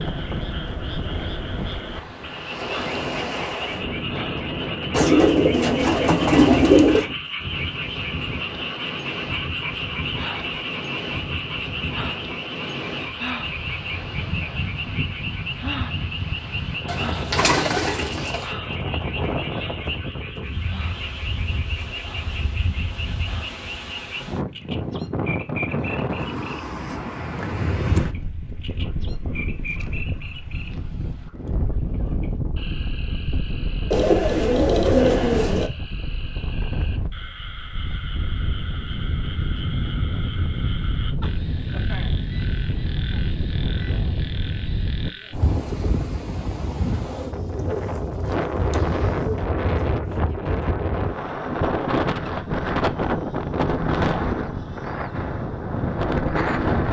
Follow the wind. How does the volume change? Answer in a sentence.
The loudness of the wind goes up.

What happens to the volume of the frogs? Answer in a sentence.
The loudness of the frogs goes down.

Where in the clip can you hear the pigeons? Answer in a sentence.
The pigeons can be heard from 4.9 to 7.0 s, from 16.9 to 18.5 s, from 33.9 to 35.7 s and from 47.0 to 49.5 s.